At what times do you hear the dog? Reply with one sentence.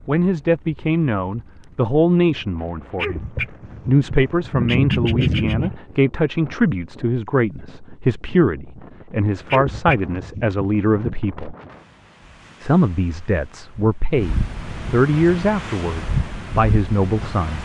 You can hear the dog from 3.0 to 5.8 s and from 9.5 to 11.2 s.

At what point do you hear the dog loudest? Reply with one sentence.
The volume of the dog peaks at 5 seconds.